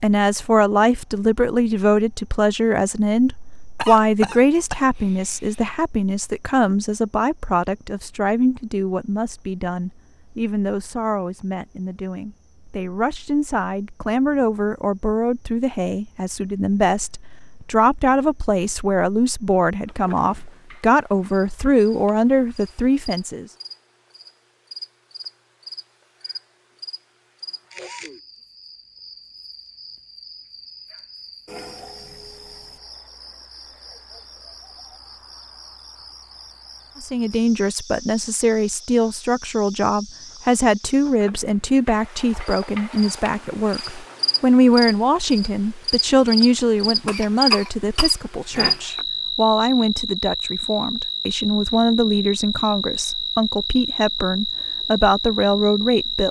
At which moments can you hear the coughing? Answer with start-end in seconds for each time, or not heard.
3.8-5.7, 47.0-48.8.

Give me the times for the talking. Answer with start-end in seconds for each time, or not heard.
0.0-23.4, 37.0-56.2.